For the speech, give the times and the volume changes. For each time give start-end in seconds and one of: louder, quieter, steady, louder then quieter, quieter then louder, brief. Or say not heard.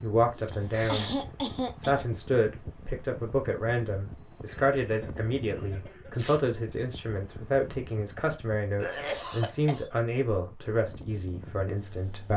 0.0-1.2 brief
1.8-12.3 steady.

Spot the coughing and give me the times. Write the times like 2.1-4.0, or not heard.
0.3-2.0, 4.5-6.3, 8.8-9.8.